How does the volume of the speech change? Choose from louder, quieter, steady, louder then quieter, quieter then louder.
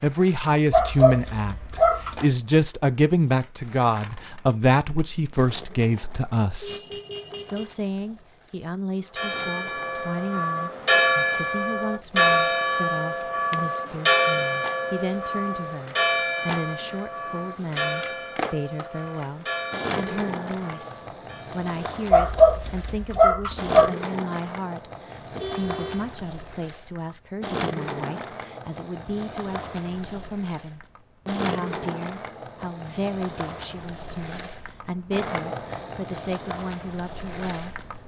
quieter.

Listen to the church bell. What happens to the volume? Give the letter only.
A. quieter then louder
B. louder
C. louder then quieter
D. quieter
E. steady
D.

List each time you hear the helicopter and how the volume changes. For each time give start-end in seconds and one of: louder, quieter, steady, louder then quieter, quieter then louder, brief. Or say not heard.
not heard.